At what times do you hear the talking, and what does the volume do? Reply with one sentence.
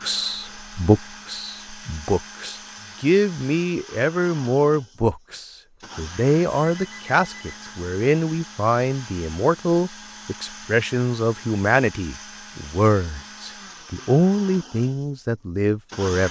You can hear the talking from 0.0 to 16.2 s, at a steady volume.